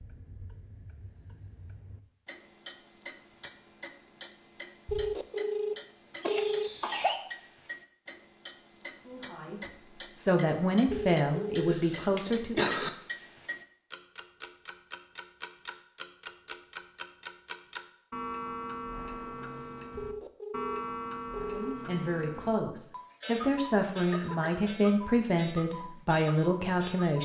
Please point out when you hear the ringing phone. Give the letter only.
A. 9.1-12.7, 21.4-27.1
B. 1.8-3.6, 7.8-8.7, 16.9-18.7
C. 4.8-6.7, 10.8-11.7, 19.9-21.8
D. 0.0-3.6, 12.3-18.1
C.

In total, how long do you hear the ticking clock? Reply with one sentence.
The ticking clock can be heard for 27 seconds in total.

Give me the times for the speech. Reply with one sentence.
The speech can be heard from 9.1 to 12.7 s and from 21.4 to 27.1 s.